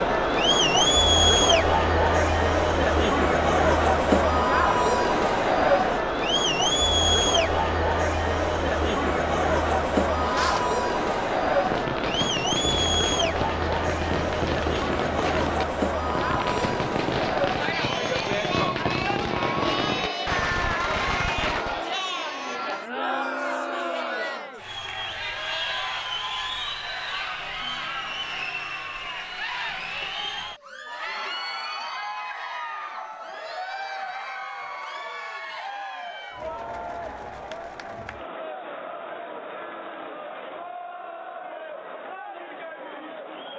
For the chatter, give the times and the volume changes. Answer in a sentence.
You can hear the chatter from 0.0 to 43.5 s, getting quieter.